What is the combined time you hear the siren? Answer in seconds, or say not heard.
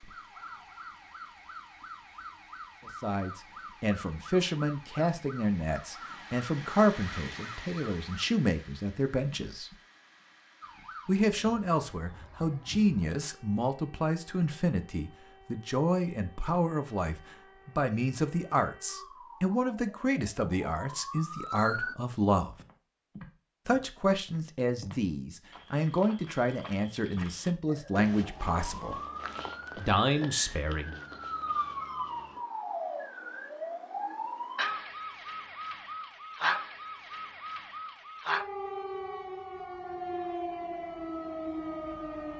34 s.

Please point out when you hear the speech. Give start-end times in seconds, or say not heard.
2.9-9.8, 11.1-22.6, 23.6-29.0, 29.8-31.0.